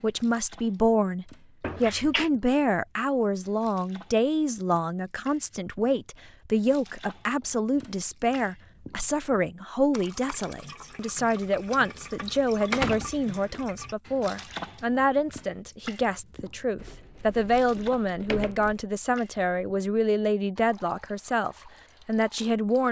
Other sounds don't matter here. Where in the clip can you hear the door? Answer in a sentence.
You can hear the door from 1.6 to 2.3 s, from 12.7 to 13.6 s and from 16.8 to 18.8 s.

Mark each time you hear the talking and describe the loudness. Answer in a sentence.
The talking can be heard from 0.0 to 22.8 s, at a steady volume.